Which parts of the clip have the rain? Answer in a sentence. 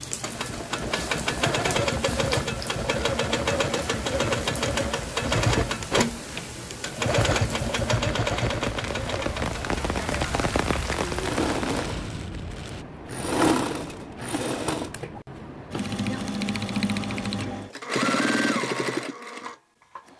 The rain can be heard from 0.0 to 12.8 s.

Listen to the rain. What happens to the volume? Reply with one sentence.
The loudness of the rain goes up.